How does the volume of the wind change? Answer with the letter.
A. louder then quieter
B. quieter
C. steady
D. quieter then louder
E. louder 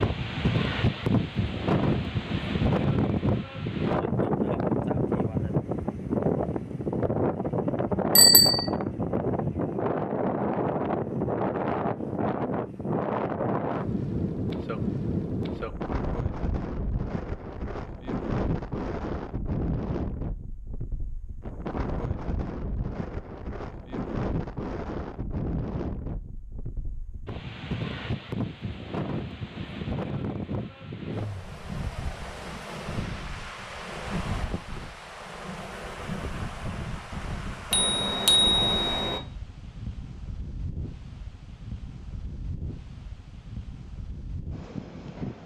B.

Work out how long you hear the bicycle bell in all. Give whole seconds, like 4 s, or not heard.
2 s.